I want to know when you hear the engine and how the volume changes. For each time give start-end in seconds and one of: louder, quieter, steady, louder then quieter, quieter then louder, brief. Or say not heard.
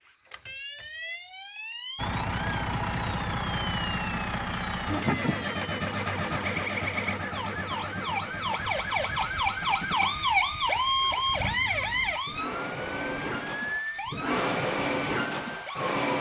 1.9-16.1 quieter then louder.